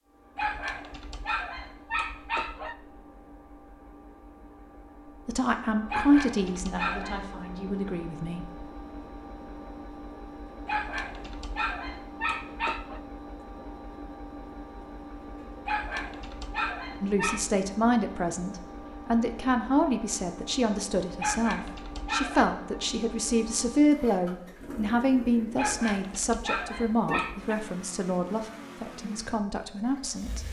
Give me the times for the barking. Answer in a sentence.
You can hear the barking from 0.3 to 2.8 s, from 5.9 to 7.3 s, from 10.7 to 13.0 s, from 15.7 to 17.4 s, from 21.2 to 22.6 s and from 25.6 to 27.6 s.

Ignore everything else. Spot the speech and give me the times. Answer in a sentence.
You can hear the speech from 5.2 to 8.4 s and from 17.0 to 30.4 s.